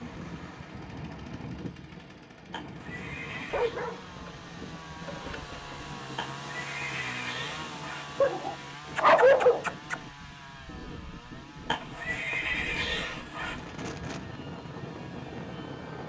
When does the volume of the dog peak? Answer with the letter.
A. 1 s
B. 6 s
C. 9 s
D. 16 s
C.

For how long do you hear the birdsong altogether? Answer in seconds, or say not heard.
not heard.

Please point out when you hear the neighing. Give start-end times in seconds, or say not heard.
2.5-3.8, 6.2-8.2, 11.7-13.7.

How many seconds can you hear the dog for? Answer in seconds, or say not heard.
4 s.